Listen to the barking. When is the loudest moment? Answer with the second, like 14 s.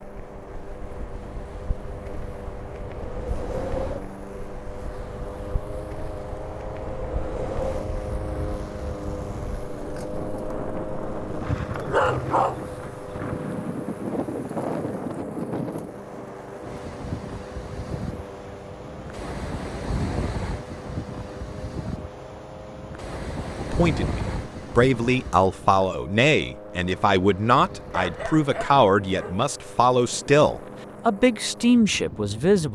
12 s.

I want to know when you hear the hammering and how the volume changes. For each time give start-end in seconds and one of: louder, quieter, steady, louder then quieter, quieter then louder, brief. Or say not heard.
not heard.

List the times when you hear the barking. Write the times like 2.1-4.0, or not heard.
11.7-13.2, 27.9-29.4.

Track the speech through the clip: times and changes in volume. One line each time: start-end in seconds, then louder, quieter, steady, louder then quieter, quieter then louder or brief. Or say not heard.
23.6-32.7 steady.